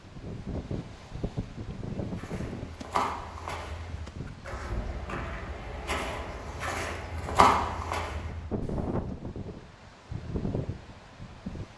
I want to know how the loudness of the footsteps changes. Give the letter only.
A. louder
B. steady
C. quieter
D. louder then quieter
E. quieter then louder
E.